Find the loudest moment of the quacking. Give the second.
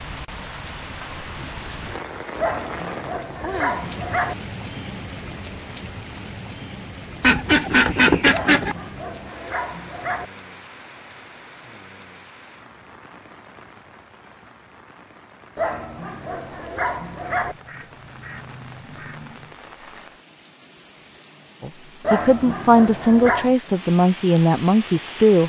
8 s.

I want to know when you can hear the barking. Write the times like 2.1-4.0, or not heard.
2.4-4.3, 8.3-10.2, 15.6-17.6, 22.0-23.6.